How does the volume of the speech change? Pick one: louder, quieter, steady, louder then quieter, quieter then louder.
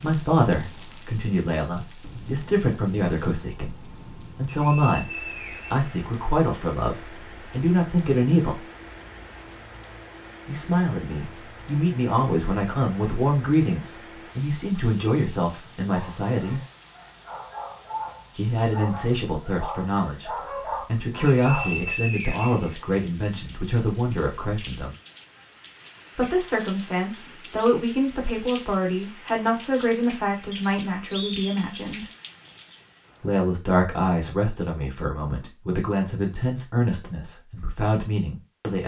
steady.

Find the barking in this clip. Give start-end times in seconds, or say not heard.
15.8-21.8.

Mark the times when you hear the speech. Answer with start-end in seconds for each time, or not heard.
0.0-8.7, 10.4-16.6, 18.4-24.9, 26.1-32.0, 33.2-38.8.